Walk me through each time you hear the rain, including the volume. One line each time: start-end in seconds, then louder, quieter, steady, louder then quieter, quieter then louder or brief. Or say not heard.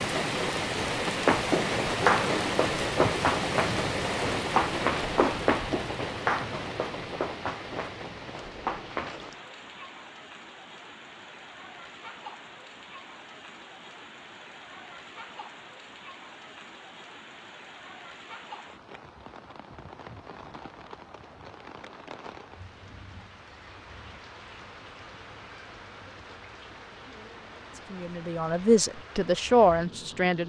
0.0-30.4 quieter.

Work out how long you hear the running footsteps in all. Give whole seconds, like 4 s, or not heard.
8 s.